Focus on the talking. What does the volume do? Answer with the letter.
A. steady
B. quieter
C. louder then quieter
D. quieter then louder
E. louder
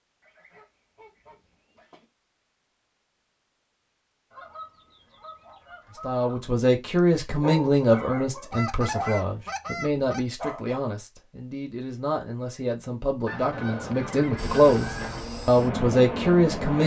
D.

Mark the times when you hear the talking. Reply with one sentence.
The talking can be heard from 6.0 to 16.8 s.